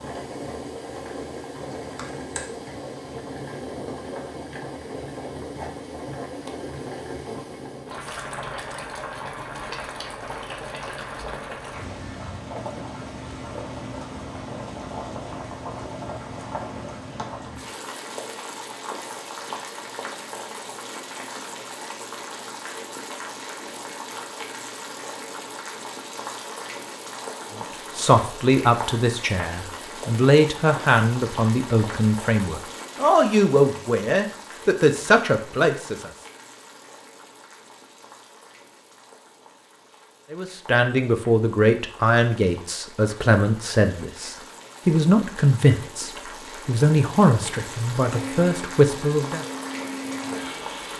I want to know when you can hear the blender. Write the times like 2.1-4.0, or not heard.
48.0-50.9.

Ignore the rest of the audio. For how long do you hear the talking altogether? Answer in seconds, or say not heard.
18 s.